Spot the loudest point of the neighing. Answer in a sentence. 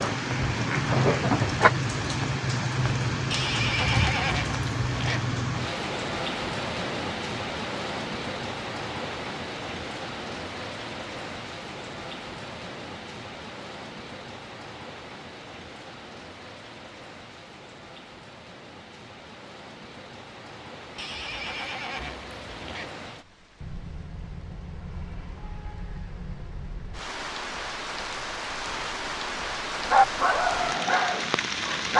The volume of the neighing peaks at 4 seconds.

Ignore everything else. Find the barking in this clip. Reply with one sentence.
You can hear the barking from 0.0 to 1.7 s and from 29.9 to 31.9 s.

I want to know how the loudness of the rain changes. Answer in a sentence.
The volume of the rain goes down, then up.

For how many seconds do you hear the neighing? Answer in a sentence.
You can hear the neighing for 4 seconds altogether.